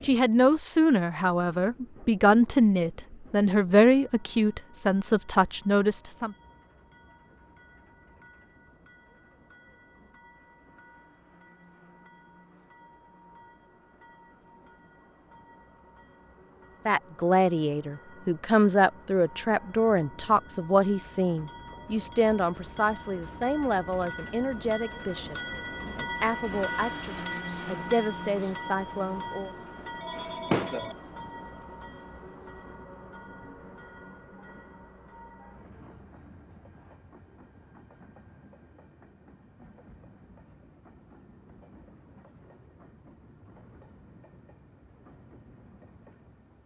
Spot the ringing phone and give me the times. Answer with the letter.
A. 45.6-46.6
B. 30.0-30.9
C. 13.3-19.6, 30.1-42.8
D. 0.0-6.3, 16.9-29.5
B.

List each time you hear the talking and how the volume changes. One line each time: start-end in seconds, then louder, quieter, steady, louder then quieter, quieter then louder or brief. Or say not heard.
0.0-6.3 steady
16.9-29.5 quieter.